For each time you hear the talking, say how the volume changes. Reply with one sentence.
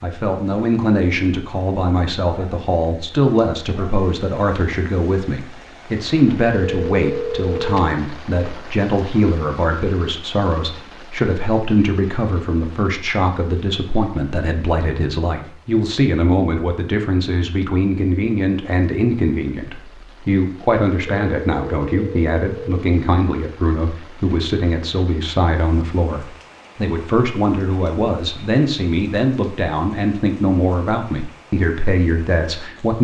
The talking can be heard from 0.0 to 32.9 s, at a steady volume.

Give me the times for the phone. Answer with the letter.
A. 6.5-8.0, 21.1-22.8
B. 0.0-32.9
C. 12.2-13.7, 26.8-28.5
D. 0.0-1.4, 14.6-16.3
A.